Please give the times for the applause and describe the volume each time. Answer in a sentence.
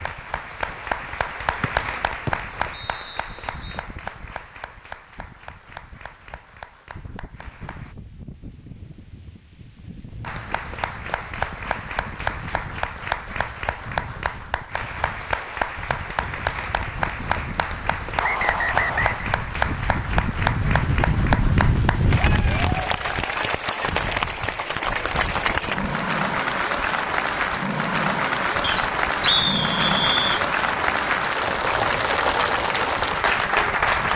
The applause can be heard from 0.0 to 8.0 s, getting quieter; and from 10.2 to 34.1 s, getting louder.